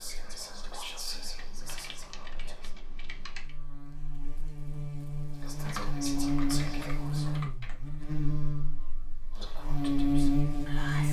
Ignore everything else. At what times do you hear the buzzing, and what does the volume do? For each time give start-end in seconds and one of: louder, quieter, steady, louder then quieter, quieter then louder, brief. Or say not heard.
0.0-11.0 louder.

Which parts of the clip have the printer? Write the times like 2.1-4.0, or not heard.
not heard.